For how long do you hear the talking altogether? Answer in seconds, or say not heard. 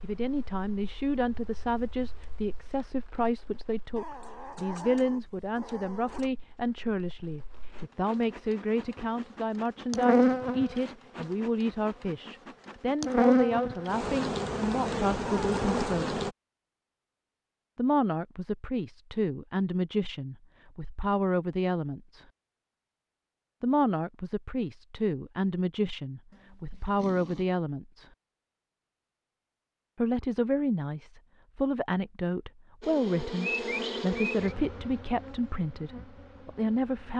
32 s.